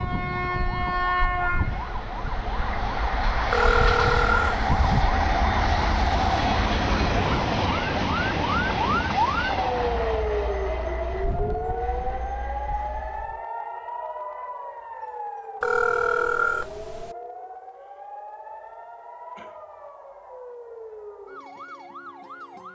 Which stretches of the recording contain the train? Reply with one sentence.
You can hear the train from 0.0 to 13.4 s.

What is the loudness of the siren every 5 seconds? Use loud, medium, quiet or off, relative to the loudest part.
medium, loud, loud, medium, quiet.